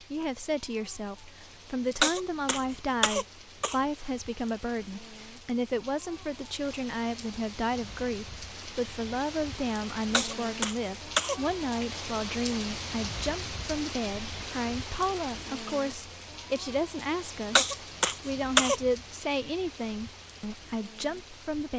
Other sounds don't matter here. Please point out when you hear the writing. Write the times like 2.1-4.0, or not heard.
not heard.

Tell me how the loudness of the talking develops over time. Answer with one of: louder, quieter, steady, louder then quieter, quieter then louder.
steady.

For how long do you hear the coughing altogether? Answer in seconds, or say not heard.
4 s.